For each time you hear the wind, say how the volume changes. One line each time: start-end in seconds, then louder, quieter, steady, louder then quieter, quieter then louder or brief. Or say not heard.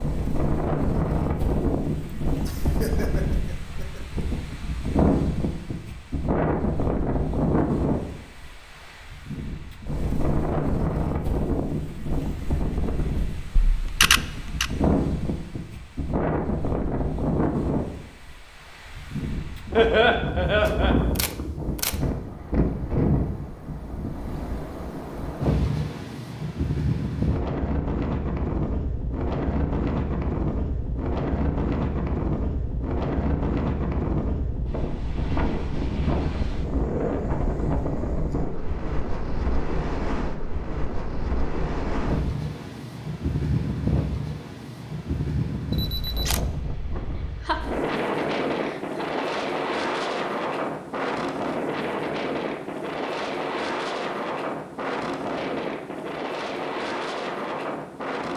0.0-58.3 steady.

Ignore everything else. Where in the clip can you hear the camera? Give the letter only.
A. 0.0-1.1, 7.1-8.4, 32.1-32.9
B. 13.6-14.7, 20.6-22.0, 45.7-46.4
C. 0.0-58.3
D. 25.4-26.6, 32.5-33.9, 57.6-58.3
B.